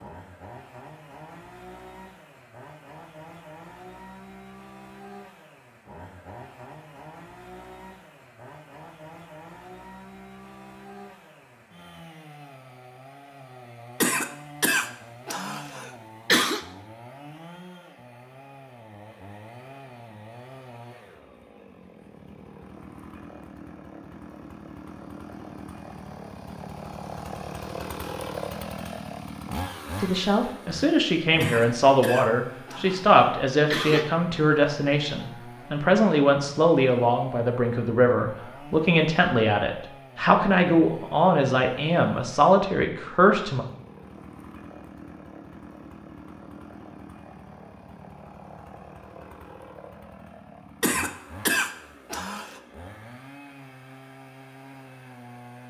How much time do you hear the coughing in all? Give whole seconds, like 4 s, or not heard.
7 s.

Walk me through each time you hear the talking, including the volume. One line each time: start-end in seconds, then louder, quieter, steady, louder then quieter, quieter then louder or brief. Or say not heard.
30.0-43.6 steady.